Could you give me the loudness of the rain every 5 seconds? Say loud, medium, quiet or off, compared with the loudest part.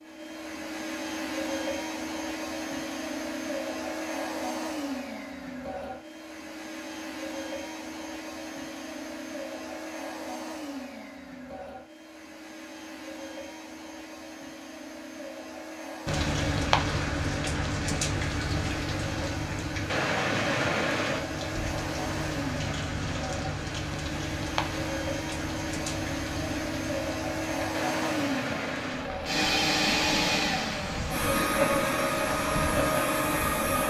off, off, off, loud, loud, medium, medium.